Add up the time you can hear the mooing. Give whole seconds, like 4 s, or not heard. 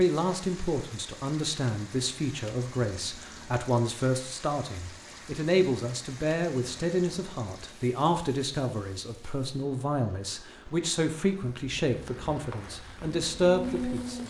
2 s.